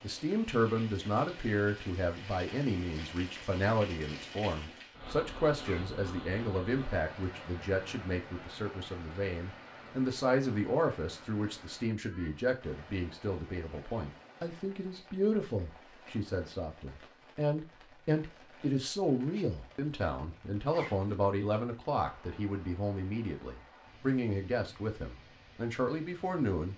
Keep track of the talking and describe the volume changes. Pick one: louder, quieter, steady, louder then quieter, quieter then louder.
steady.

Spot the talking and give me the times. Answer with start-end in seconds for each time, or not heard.
0.0-26.7.